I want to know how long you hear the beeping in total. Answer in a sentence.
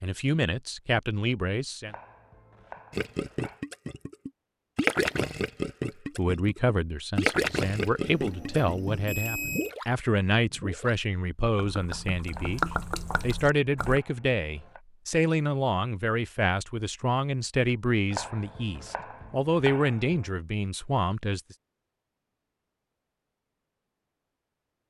The beeping can be heard for 2 seconds in total.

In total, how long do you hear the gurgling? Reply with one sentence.
You can hear the gurgling for 11 seconds altogether.